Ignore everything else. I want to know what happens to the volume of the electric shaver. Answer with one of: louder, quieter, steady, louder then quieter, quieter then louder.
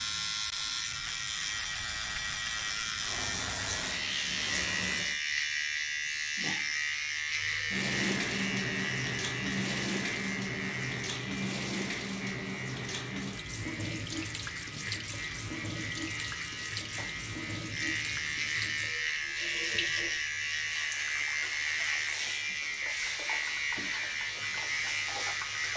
quieter then louder.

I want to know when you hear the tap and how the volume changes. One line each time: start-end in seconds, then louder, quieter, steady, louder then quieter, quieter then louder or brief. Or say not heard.
3.0-5.2 brief
7.3-25.7 quieter.